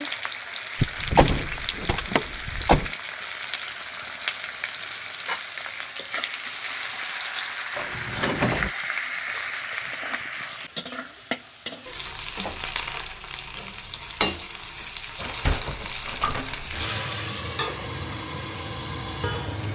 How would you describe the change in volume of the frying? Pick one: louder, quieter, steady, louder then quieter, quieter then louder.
steady.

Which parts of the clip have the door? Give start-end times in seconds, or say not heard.
0.8-2.9, 7.8-8.7, 15.2-16.9.